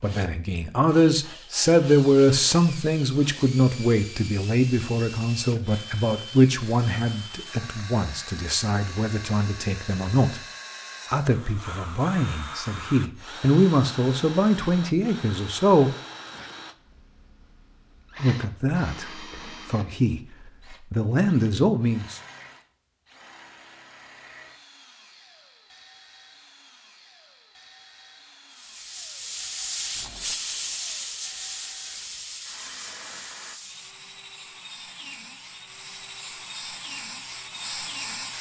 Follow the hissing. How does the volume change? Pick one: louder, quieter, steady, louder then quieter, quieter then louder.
quieter then louder.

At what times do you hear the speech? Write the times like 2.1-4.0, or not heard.
0.0-10.4, 11.1-15.9, 18.2-19.1, 19.7-22.2.